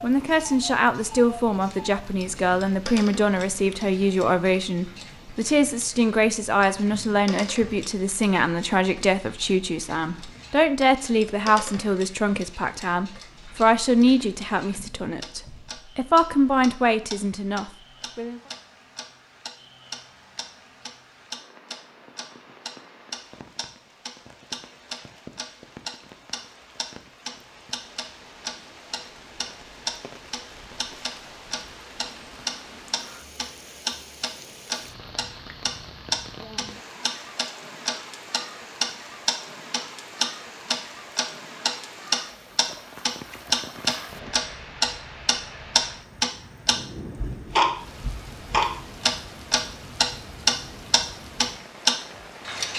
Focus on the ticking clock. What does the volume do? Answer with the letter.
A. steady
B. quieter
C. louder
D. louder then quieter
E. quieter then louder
C.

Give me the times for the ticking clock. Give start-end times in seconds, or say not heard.
0.1-52.7.